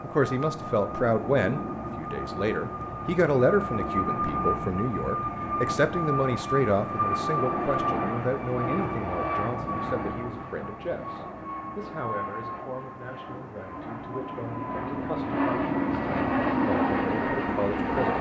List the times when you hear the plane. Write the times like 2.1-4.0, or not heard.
0.0-18.1.